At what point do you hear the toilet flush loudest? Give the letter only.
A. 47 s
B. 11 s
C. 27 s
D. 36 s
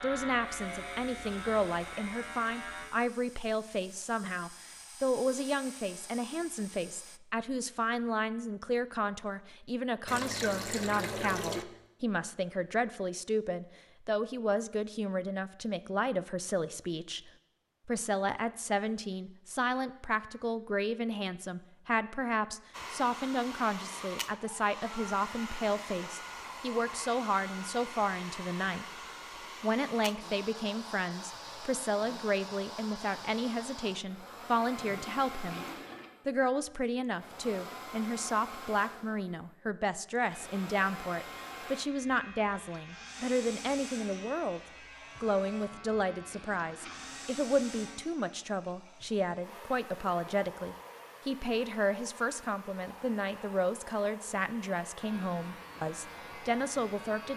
B.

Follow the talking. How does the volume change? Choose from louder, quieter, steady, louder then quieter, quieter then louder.
steady.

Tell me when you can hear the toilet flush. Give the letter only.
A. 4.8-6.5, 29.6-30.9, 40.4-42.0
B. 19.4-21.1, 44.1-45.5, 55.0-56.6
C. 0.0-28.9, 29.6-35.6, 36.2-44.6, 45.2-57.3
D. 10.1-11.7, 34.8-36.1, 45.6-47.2
D.